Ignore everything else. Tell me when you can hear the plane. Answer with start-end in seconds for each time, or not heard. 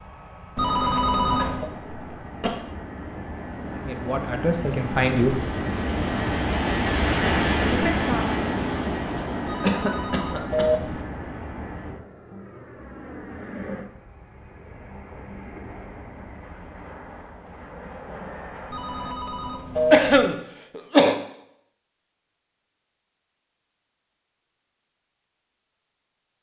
0.0-19.1.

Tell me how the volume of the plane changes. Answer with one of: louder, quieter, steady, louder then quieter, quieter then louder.
louder then quieter.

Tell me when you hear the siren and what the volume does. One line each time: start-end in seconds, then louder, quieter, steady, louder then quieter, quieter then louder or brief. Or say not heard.
not heard.